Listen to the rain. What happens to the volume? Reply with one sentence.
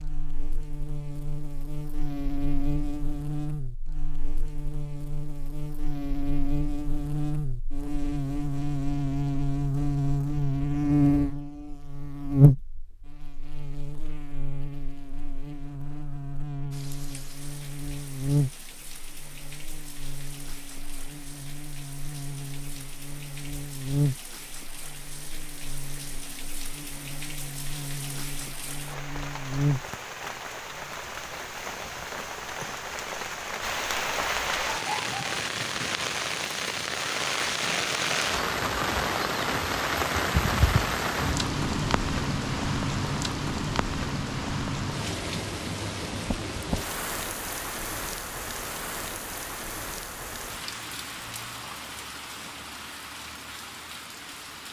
The volume of the rain goes up, then down.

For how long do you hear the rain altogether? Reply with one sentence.
The rain can be heard for 38 seconds in total.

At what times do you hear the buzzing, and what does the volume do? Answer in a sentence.
You can hear the buzzing from 0.0 to 29.9 s, getting louder then quieter.